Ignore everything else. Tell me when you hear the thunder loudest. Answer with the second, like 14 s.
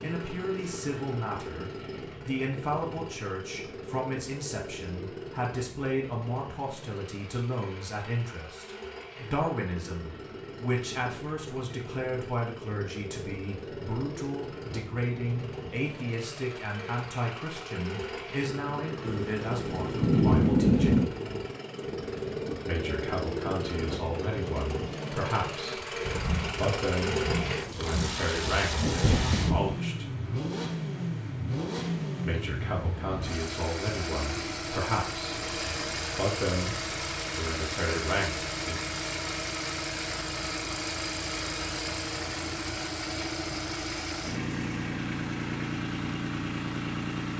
21 s.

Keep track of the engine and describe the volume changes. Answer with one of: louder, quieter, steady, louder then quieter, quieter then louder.
louder.